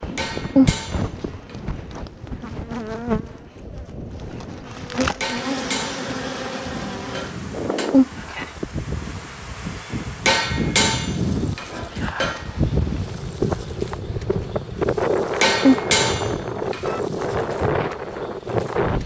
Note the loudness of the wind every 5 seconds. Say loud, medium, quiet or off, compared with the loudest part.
medium, medium, loud, loud.